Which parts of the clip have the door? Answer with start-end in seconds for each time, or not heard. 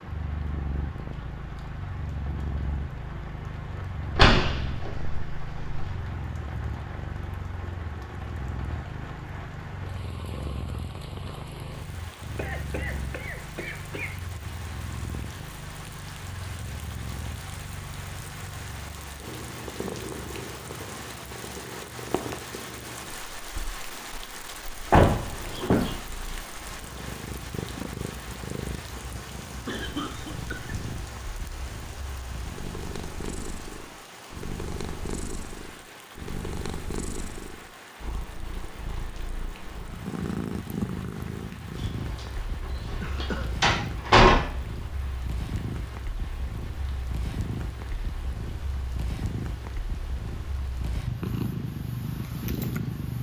4.2-6.0, 24.9-25.9, 41.8-42.2, 42.9-44.4.